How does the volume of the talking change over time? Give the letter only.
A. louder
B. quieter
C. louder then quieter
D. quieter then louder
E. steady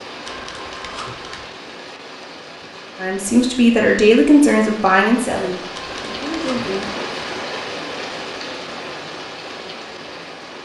B.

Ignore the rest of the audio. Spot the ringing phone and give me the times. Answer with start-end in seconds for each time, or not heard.
0.2-1.5, 5.8-7.0.